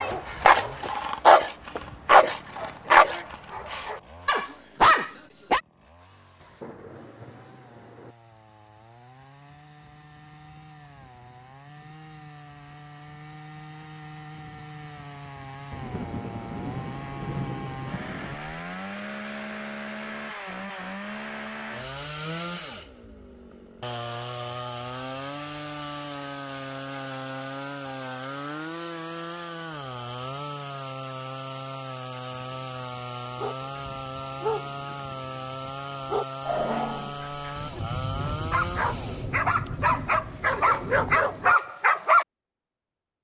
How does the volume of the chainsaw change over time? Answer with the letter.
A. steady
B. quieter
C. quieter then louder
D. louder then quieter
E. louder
E.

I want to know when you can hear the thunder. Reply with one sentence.
The thunder can be heard from 6.4 to 8.2 s, from 15.7 to 18.6 s and from 37.5 to 41.5 s.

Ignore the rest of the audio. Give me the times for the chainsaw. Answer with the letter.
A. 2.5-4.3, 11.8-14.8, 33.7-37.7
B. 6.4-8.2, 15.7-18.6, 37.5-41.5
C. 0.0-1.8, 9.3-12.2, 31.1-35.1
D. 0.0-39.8
D.